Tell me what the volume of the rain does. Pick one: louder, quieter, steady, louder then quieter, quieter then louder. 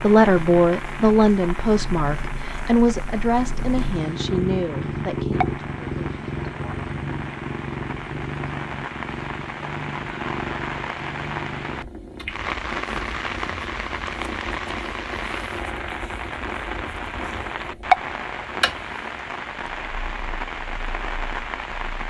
louder.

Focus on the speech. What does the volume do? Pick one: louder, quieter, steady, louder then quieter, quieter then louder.
quieter.